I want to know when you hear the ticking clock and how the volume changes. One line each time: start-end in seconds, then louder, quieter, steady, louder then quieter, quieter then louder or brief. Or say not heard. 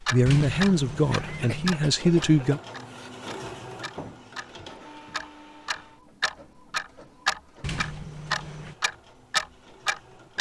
0.1-4.5 quieter
5.1-10.3 louder.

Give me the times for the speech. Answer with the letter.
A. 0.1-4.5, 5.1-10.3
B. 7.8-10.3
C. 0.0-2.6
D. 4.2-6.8
C.